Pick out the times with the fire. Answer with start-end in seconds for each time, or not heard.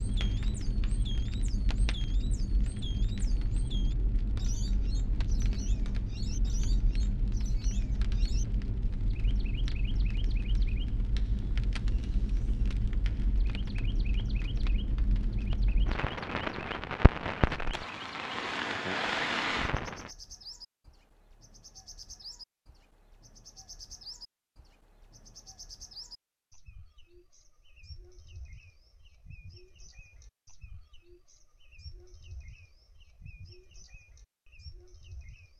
0.0-20.1.